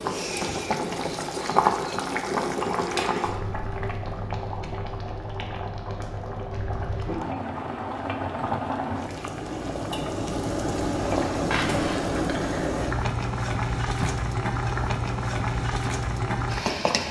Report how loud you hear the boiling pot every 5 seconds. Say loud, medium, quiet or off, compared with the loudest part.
loud, medium, loud, loud.